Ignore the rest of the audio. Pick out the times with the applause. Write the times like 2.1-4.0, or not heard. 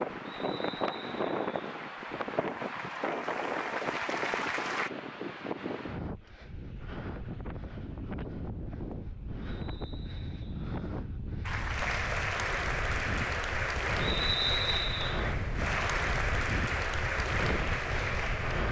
0.0-4.9, 11.4-18.6.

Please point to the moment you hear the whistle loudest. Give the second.
14 s.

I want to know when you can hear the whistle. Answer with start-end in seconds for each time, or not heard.
0.2-1.5, 9.4-10.7, 14.0-15.3.